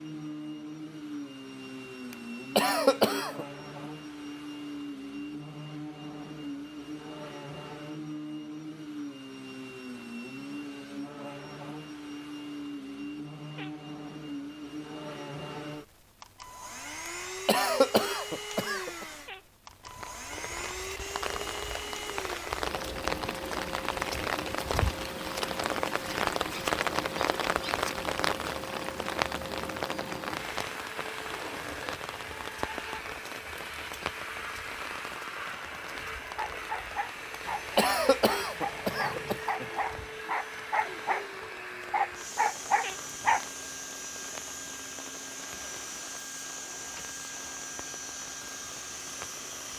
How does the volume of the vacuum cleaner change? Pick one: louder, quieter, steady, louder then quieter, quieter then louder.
steady.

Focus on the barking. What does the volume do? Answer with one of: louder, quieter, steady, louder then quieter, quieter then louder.
louder.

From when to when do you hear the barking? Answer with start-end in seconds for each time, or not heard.
36.0-43.5.